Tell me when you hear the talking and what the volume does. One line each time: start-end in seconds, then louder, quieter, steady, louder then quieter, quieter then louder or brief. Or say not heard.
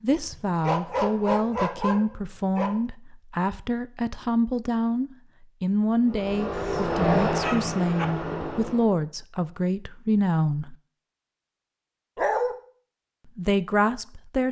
0.0-10.8 steady
13.3-14.4 brief.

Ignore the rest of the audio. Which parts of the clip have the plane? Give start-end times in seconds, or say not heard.
6.0-8.9.